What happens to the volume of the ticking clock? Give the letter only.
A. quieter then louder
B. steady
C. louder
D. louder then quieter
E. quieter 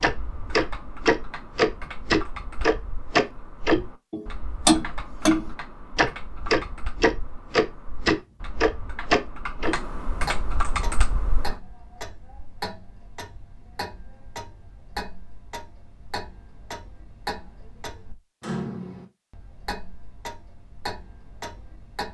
E.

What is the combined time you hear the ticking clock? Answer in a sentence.
The ticking clock can be heard for 22 seconds in total.